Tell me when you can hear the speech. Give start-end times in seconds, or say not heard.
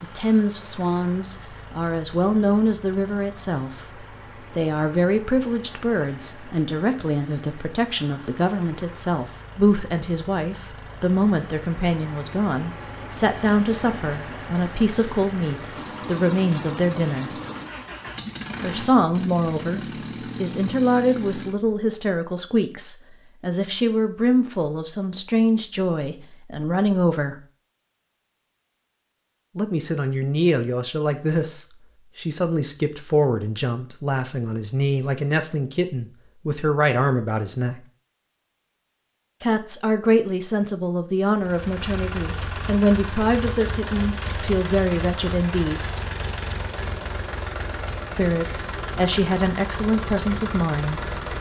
0.0-17.4, 18.6-27.4, 29.6-37.8, 39.4-45.9, 48.1-51.3.